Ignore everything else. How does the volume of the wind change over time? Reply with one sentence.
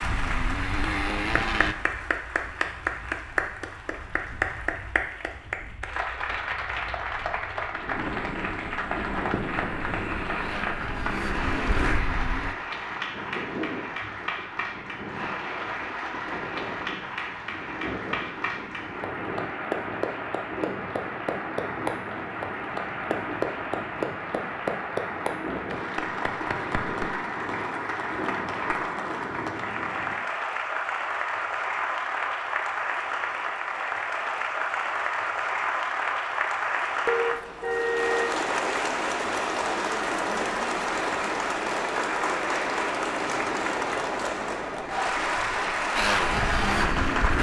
The loudness of the wind goes up.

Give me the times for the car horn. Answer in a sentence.
You can hear the car horn from 37.0 to 38.4 s.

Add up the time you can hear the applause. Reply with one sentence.
The applause can be heard for 47 seconds in total.